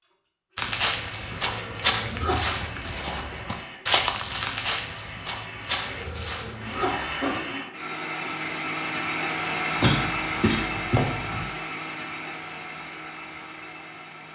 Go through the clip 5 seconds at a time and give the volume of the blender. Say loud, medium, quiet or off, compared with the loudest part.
medium, loud, loud.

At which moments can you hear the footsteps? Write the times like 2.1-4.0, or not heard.
0.6-7.5.